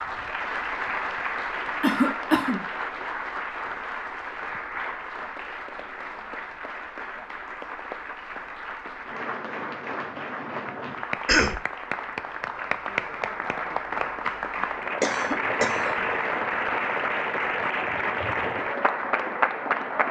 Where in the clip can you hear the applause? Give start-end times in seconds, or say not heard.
0.0-20.0.